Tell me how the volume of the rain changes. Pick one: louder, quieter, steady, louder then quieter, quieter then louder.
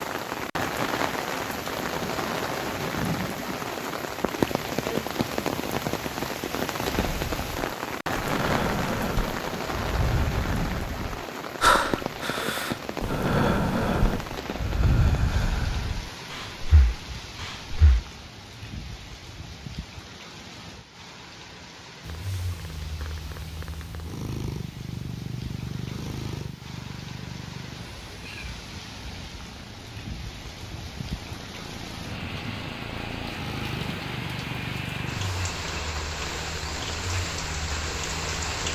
quieter then louder.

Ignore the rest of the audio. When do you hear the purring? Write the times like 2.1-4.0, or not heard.
22.0-38.7.